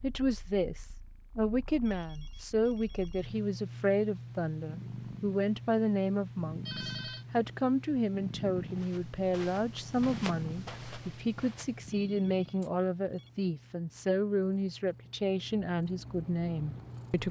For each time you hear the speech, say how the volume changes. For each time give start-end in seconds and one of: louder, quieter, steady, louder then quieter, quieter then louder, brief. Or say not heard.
0.0-17.2 steady.